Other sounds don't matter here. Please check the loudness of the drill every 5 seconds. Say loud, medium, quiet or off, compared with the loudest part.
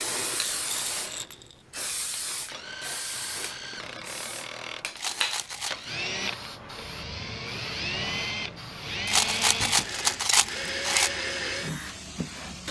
medium, loud, loud.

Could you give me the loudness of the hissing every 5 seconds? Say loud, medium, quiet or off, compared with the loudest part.
loud, loud, medium.